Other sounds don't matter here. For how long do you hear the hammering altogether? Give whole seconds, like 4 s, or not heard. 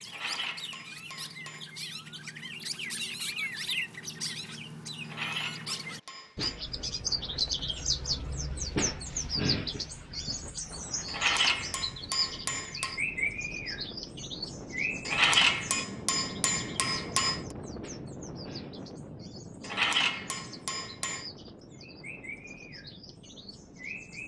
9 s.